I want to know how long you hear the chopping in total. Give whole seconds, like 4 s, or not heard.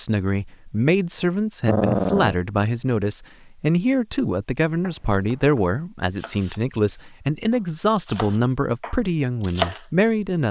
5 s.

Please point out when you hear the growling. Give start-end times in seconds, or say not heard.
1.6-2.4.